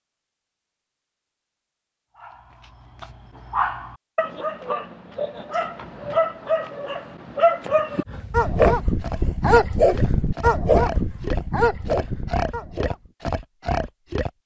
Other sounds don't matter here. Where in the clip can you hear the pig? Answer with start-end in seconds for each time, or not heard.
8.1-14.3.